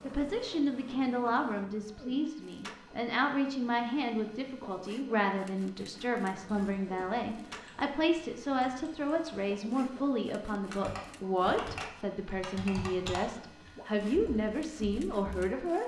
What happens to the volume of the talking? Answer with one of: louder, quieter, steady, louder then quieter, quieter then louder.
steady.